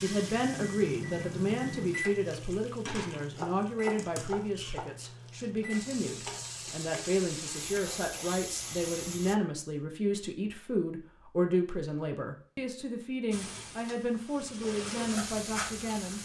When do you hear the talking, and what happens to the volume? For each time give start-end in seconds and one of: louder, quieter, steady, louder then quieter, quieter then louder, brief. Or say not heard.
0.0-16.2 steady.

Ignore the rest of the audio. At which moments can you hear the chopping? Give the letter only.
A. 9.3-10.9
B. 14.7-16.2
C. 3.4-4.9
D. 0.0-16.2
C.